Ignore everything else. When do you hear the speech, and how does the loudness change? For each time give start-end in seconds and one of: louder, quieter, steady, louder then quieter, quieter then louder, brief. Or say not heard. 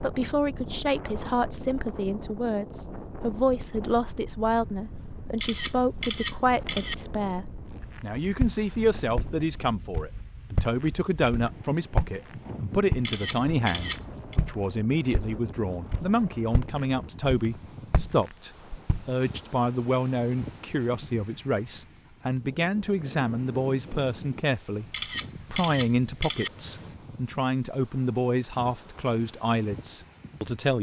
0.0-24.9 steady
25.5-30.7 steady.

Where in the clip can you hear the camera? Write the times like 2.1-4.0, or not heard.
5.4-7.0, 13.1-14.3, 24.9-26.5.